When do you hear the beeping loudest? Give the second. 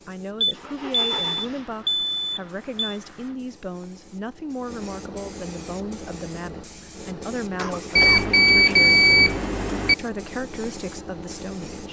9 s.